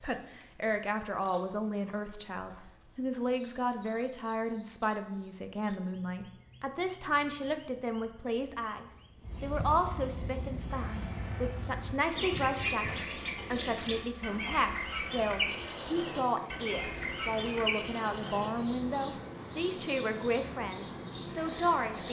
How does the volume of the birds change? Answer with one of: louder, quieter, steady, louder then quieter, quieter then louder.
louder.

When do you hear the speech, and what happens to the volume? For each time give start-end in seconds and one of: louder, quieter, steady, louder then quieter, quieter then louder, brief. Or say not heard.
0.0-22.0 steady.